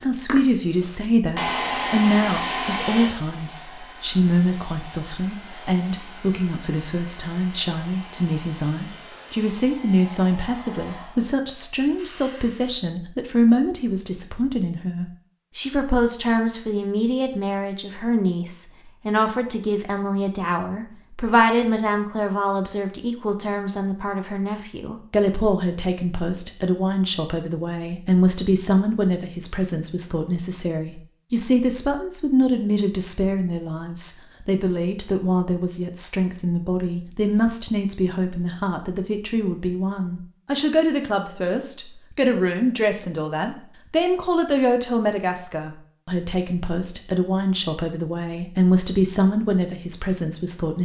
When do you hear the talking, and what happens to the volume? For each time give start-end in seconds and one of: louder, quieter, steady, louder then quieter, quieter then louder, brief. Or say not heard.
0.0-50.8 steady.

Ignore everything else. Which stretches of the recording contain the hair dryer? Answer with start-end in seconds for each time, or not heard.
0.0-12.8.